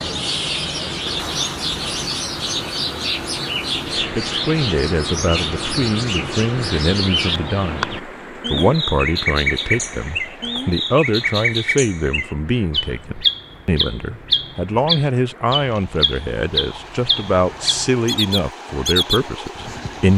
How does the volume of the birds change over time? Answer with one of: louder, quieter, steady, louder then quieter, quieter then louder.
steady.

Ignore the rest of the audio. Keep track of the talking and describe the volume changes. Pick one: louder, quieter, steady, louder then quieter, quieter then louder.
steady.